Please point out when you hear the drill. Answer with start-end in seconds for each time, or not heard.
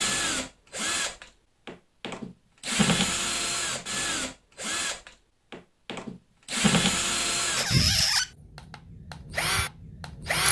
0.0-10.4.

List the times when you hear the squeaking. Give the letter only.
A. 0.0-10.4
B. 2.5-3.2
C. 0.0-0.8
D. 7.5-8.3
D.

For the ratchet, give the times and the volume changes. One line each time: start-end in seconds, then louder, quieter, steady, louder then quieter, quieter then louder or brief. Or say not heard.
not heard.